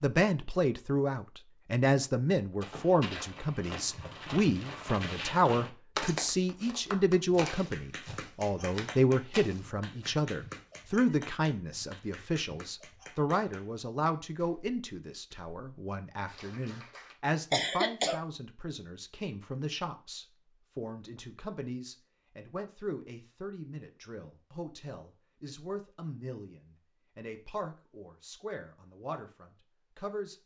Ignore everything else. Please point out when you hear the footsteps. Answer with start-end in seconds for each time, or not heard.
2.6-10.1.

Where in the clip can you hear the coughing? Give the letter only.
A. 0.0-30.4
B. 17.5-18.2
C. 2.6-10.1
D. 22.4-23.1
B.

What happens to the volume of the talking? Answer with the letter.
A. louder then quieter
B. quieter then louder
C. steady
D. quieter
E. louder
D.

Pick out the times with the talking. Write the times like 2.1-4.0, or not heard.
0.0-30.4.